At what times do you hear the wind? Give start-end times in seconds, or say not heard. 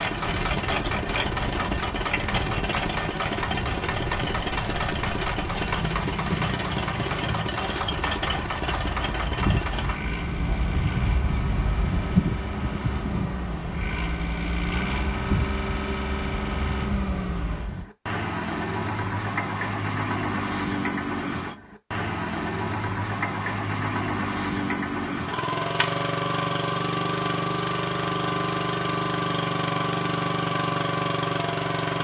0.1-17.9.